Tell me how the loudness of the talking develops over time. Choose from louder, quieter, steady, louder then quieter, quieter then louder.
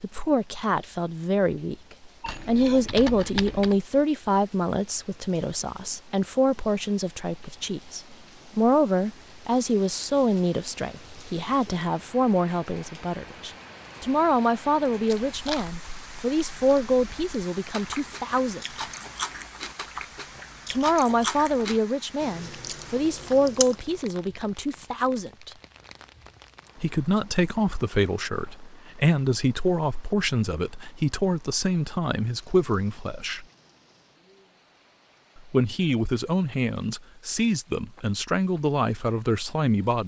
steady.